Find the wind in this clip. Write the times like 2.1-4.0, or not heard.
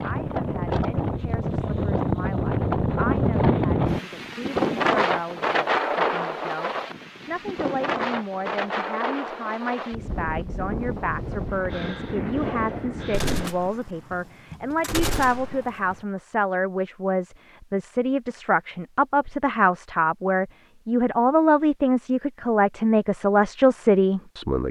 0.0-13.5.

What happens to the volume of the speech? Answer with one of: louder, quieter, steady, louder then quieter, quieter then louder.
louder.